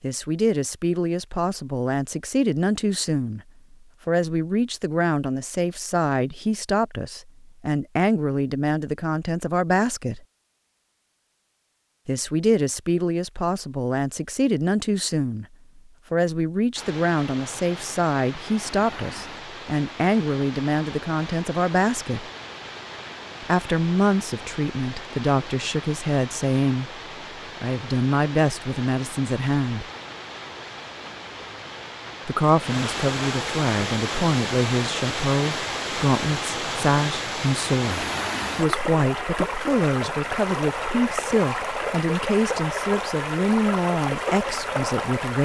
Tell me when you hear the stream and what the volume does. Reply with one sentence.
The stream can be heard from 16.8 to 45.4 s, getting louder.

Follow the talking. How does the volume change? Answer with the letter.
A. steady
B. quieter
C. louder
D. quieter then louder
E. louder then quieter
A.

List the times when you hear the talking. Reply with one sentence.
The talking can be heard from 0.0 to 10.2 s, from 12.1 to 22.3 s, from 23.4 to 29.9 s and from 32.2 to 45.4 s.